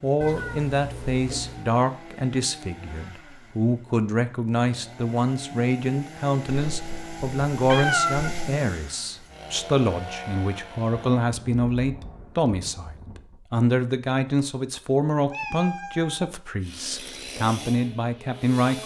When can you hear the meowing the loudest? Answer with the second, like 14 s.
8 s.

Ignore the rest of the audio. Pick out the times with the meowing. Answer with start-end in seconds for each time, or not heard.
0.2-1.6, 6.5-8.4, 15.3-16.3.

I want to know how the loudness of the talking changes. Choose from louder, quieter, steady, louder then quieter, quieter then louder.
steady.